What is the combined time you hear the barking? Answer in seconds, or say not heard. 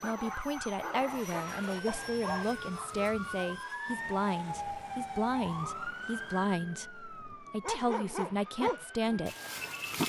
6 s.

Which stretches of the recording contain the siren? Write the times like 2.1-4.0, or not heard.
0.0-9.8.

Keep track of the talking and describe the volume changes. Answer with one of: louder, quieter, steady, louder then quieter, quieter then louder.
steady.